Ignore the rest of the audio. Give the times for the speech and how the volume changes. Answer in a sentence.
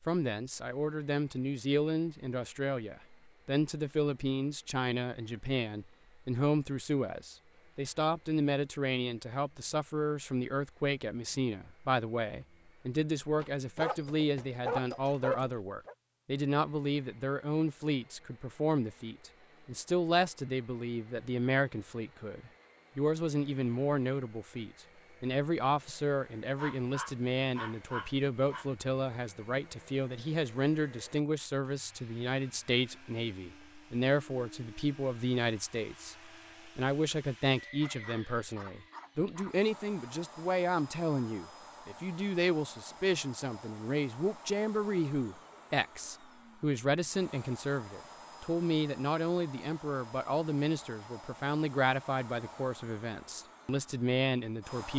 The speech can be heard from 0.1 to 54.9 s, at a steady volume.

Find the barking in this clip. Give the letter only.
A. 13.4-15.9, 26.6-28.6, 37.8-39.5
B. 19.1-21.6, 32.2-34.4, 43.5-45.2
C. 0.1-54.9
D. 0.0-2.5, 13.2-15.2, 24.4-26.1
A.